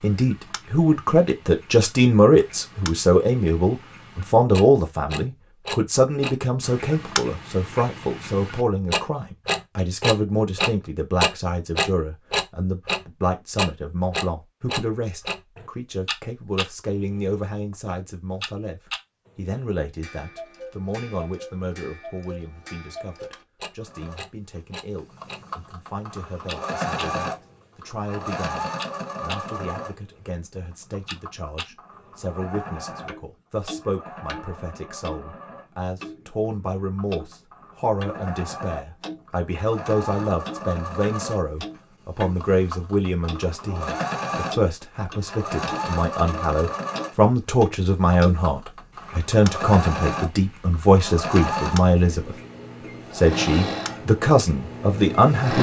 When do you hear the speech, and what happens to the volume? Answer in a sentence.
The speech can be heard from 0.0 to 52.4 s, getting quieter then louder; and briefly from 53.1 to 55.5 s.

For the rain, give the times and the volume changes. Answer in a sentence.
The rain can't be heard in this clip.